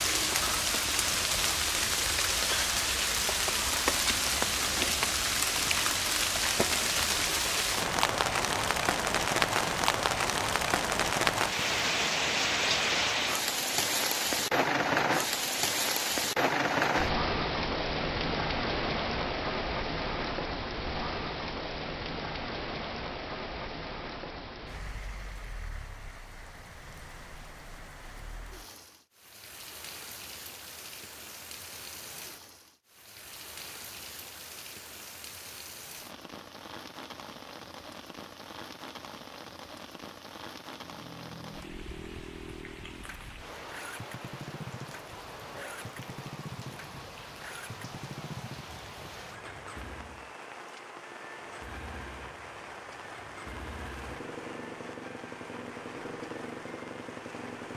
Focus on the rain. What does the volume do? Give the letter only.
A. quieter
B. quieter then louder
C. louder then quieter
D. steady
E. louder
A.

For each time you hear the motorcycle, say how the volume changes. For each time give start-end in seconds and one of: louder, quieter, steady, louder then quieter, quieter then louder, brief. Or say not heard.
40.7-50.4 steady
51.4-57.7 louder.